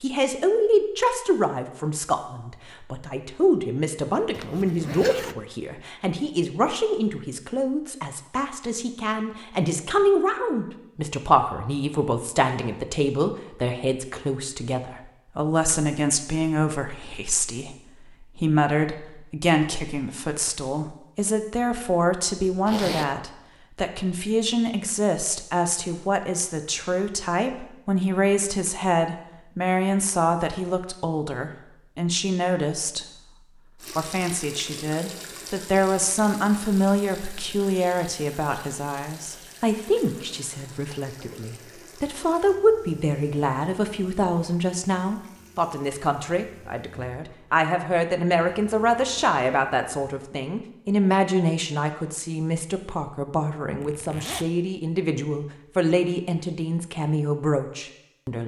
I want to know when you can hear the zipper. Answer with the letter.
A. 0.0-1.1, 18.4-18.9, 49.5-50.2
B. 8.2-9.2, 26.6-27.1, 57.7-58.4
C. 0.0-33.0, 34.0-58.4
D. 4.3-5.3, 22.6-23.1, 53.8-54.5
D.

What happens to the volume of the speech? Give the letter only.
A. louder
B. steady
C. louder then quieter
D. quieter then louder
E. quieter
B.